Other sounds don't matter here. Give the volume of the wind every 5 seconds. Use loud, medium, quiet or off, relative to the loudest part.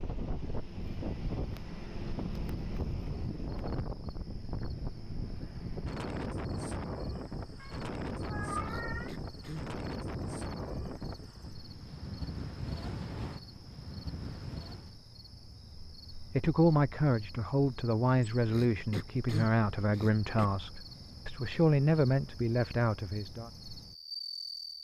loud, loud, loud, off, off.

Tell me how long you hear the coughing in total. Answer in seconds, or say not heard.
3 s.